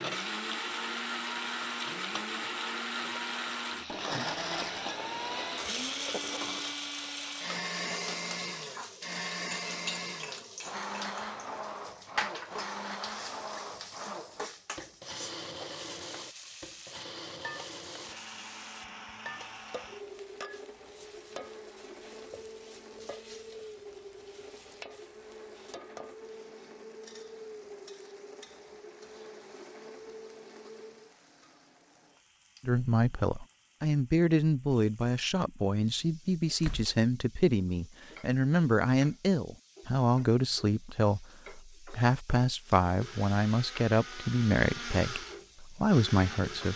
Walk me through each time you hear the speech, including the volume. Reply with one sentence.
You can hear the speech from 32.6 to 46.7 s, at a steady volume.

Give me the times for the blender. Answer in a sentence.
You can hear the blender from 0.0 to 31.1 s and from 42.6 to 46.7 s.